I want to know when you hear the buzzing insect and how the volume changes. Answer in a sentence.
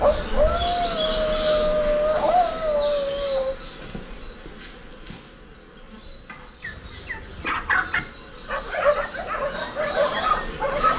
You can hear the buzzing insect from 0.0 to 10.9 s, getting quieter then louder.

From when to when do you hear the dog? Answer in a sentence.
The dog can be heard from 0.0 to 3.5 s and from 8.4 to 10.9 s.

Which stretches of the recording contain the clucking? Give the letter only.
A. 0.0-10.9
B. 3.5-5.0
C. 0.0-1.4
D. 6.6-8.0
D.